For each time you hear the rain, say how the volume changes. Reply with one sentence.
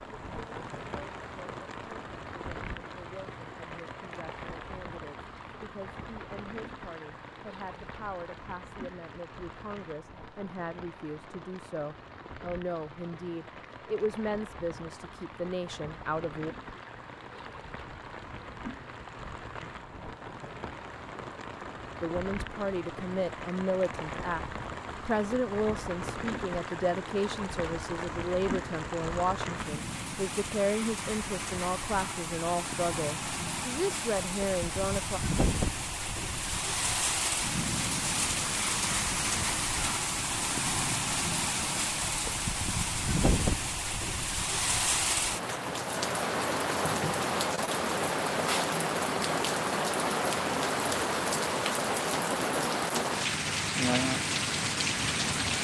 The rain can be heard from 0.0 to 55.5 s, getting louder.